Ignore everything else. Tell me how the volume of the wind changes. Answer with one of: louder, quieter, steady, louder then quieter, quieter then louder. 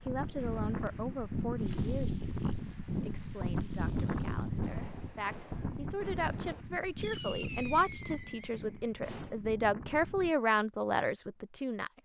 quieter.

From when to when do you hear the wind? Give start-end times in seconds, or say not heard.
0.0-10.3.